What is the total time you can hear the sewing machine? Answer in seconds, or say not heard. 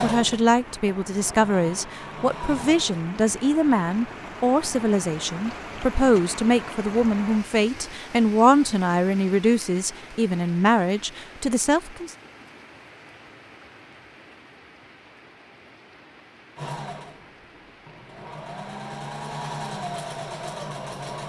8 s.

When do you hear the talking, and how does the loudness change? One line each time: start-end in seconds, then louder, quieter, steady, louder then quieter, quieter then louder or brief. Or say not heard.
0.0-12.1 steady.